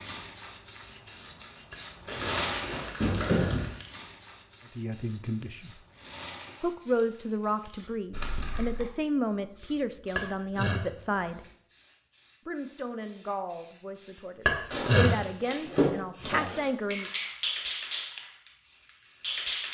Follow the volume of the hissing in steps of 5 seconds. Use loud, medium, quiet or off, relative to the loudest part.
medium, quiet, quiet, loud.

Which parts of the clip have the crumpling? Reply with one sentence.
The crumpling can be heard from 2.0 to 3.8 s, from 8.1 to 8.9 s and from 14.7 to 16.7 s.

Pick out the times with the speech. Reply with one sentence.
The speech can be heard from 4.8 to 5.7 s, from 6.6 to 11.4 s and from 12.4 to 17.1 s.